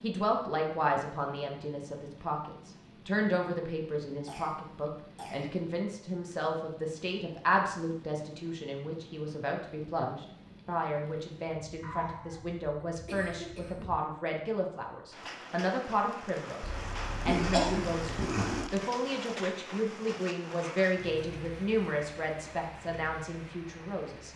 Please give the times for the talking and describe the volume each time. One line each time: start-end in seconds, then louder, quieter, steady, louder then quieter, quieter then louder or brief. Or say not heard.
0.0-24.3 steady.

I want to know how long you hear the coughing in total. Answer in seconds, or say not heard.
5 s.